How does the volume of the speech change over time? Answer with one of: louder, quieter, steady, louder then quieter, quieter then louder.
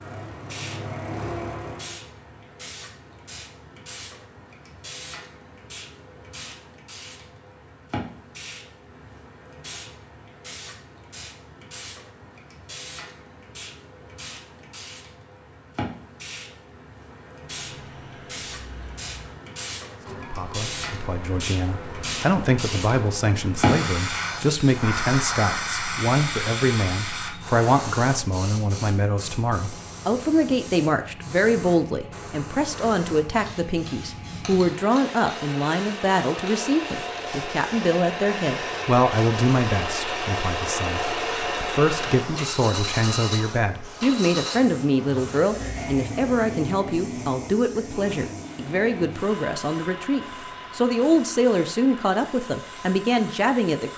steady.